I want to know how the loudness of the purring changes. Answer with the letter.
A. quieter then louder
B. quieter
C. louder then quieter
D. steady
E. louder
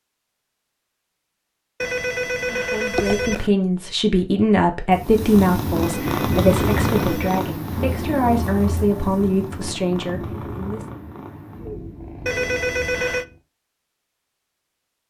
B.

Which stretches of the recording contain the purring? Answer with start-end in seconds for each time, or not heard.
4.9-13.4.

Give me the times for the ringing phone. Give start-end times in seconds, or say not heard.
1.8-3.5, 5.8-7.5, 12.2-13.2.